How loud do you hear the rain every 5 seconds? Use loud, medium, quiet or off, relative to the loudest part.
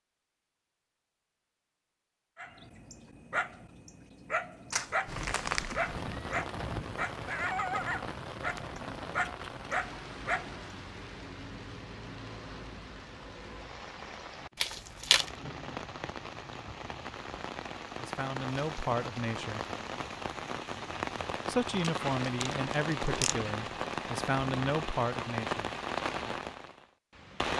off, medium, medium, medium, loud, loud.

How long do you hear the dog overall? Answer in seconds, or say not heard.
8 s.